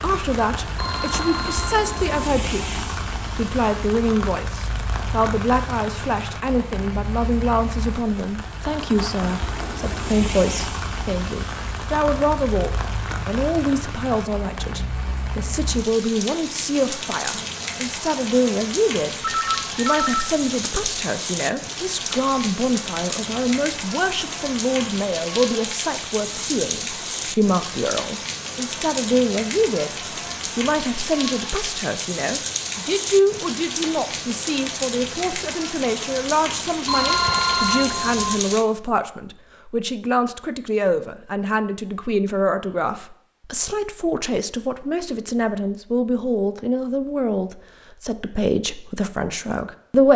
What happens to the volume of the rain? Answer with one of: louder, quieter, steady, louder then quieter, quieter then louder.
steady.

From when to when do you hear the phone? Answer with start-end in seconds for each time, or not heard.
0.8-2.1, 19.2-20.9, 36.9-38.4.